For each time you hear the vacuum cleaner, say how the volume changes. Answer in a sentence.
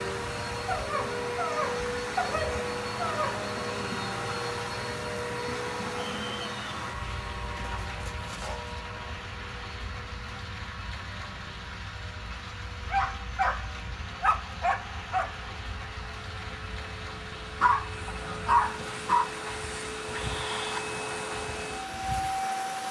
The vacuum cleaner can be heard from 0.0 to 22.8 s, getting quieter then louder.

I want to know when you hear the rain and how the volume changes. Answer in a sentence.
You can hear the rain from 0.0 to 22.8 s, at a steady volume.